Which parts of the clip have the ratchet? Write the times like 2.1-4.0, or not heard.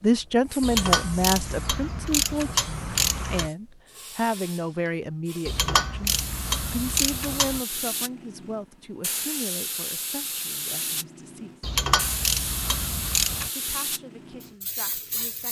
0.6-3.5, 5.5-7.6, 11.6-13.5.